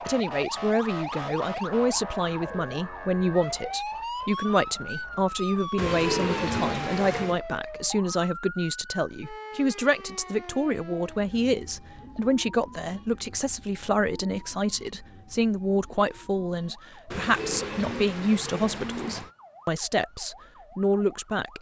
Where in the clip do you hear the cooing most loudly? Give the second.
6 s.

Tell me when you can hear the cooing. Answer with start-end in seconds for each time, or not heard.
5.8-7.4, 17.1-19.3.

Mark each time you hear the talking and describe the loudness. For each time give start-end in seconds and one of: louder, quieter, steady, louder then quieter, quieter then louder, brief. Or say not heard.
0.1-21.5 steady.